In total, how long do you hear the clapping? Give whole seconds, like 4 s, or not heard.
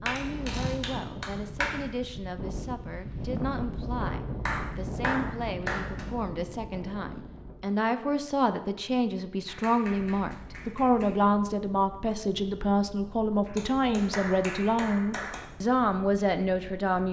7 s.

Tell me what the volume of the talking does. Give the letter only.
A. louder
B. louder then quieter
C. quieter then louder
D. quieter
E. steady
A.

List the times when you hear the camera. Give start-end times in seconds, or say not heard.
0.1-0.8.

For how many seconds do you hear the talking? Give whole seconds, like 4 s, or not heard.
17 s.